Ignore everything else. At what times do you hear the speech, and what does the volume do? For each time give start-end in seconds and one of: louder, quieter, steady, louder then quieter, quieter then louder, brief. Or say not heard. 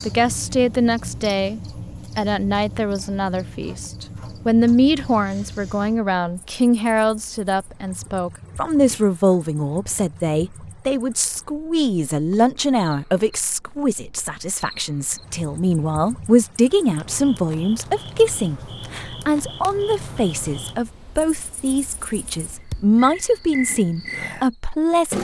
0.1-25.1 steady.